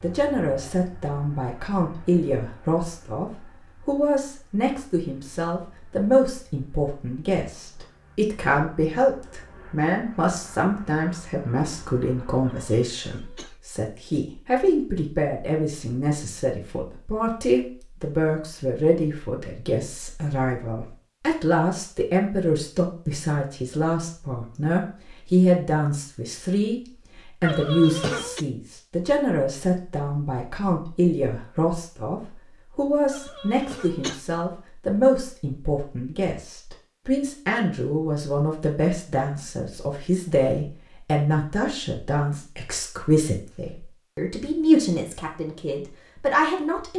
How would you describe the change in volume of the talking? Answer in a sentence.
The volume of the talking stays about the same.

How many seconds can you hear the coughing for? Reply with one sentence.
The coughing can be heard for 3 seconds in total.